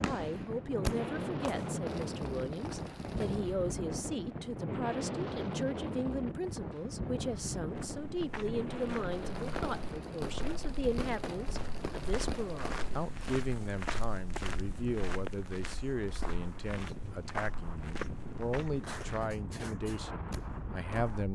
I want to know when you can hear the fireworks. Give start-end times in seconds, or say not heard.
0.0-3.5, 9.1-13.0, 18.8-21.2.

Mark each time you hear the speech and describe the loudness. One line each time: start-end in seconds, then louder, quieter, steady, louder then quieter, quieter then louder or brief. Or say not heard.
0.0-21.3 steady.